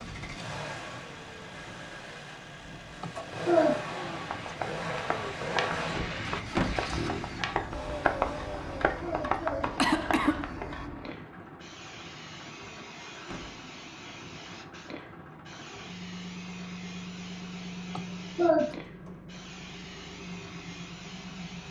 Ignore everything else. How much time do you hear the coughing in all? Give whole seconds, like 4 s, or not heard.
3 s.